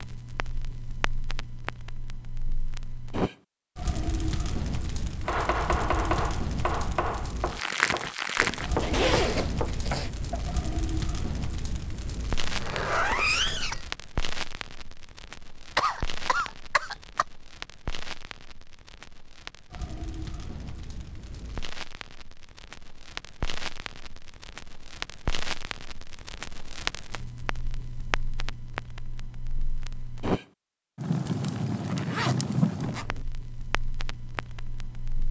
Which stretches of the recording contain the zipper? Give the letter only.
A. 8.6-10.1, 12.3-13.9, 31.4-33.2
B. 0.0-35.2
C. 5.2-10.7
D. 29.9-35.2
A.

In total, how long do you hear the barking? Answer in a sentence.
You can't hear the barking here.